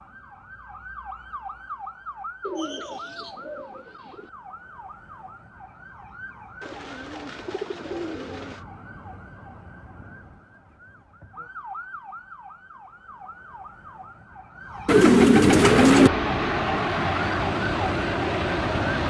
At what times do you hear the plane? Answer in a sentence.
You can hear the plane from 15.7 to 19.0 s.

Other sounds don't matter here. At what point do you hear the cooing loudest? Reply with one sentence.
The loudest moment of the cooing is at 15 seconds.